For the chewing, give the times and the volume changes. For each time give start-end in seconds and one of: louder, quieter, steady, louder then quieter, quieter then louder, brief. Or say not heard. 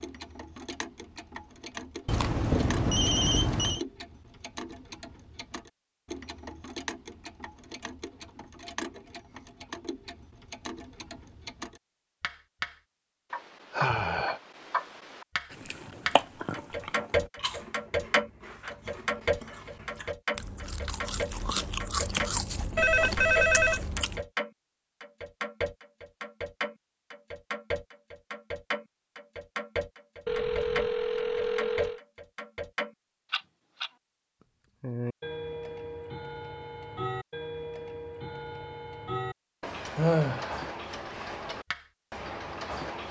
15.5-24.2 quieter then louder.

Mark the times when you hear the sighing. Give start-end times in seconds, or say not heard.
13.7-14.4, 40.0-40.7.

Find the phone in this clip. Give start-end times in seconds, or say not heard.
2.0-3.8, 22.8-23.8, 30.2-32.0.